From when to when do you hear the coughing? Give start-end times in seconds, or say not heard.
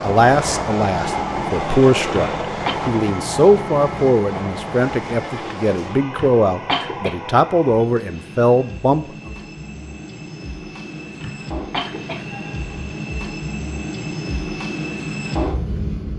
2.1-2.8, 6.2-7.2, 11.2-12.2.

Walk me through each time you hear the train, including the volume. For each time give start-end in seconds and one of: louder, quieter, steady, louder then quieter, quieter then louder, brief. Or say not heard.
0.0-16.1 quieter then louder.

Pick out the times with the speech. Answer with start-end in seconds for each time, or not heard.
0.0-9.3.